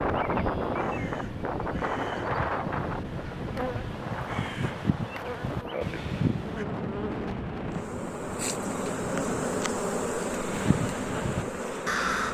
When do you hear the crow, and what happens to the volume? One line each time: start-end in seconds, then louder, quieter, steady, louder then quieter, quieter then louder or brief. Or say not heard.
0.7-6.7 louder
10.5-12.3 brief.